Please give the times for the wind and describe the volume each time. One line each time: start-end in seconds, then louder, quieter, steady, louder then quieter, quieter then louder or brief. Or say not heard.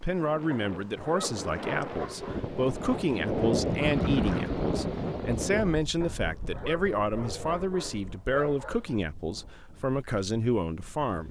0.0-11.2 louder then quieter.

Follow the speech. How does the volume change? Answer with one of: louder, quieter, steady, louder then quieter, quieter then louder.
steady.